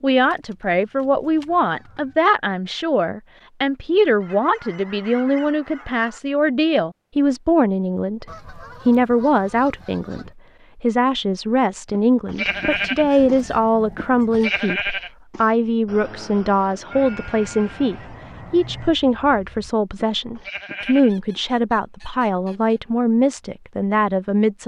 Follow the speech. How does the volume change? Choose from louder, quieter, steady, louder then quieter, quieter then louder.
steady.